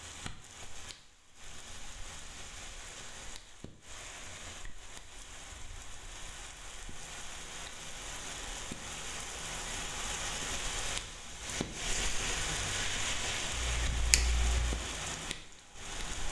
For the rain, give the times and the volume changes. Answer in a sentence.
The rain can be heard from 0.0 to 16.2 s, getting louder.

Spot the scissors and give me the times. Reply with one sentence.
You can hear the scissors from 13.5 to 14.8 s.